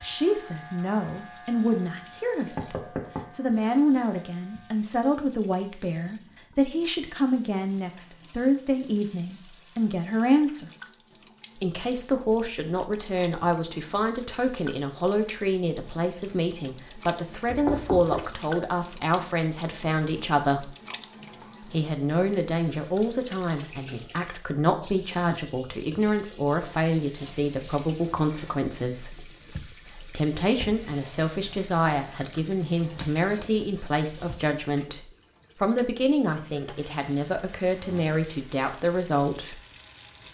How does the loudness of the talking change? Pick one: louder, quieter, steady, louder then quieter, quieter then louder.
steady.